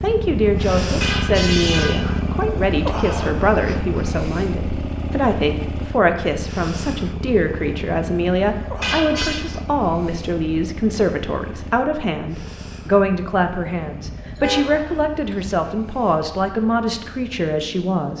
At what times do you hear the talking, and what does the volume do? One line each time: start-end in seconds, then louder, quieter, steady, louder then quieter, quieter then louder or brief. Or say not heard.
0.0-18.1 steady.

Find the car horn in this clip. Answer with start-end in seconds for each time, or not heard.
1.0-2.2, 8.8-9.4, 14.0-15.6.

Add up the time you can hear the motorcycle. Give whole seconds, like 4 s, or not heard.
18 s.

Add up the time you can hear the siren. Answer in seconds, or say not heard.
not heard.